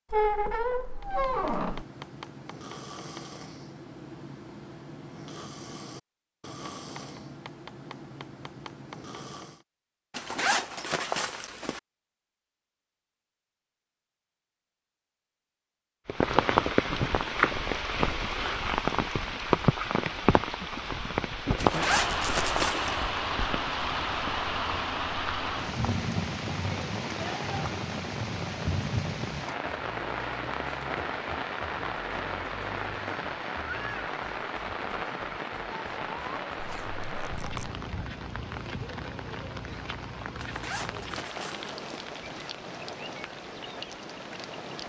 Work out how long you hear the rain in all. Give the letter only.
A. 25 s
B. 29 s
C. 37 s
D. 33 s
B.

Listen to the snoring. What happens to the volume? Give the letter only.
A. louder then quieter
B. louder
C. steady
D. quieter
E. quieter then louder
C.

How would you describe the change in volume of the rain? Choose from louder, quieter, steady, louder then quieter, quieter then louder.
quieter.